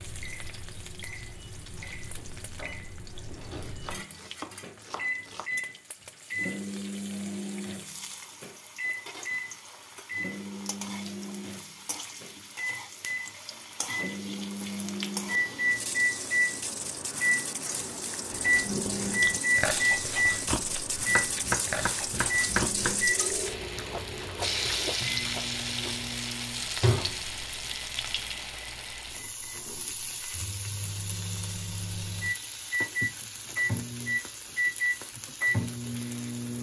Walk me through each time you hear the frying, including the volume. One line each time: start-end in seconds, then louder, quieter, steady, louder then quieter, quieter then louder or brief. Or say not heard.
0.0-36.5 louder then quieter.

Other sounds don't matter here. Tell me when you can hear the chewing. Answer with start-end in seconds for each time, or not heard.
18.3-26.1.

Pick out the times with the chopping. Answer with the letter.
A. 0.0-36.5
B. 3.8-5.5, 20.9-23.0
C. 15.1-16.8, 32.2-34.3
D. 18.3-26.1
B.